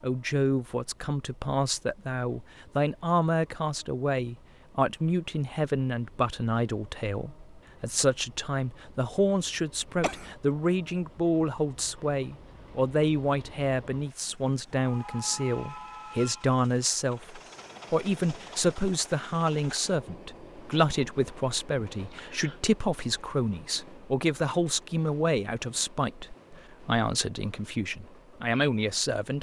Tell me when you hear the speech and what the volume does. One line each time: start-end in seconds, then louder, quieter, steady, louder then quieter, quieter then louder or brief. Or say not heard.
0.0-29.3 steady.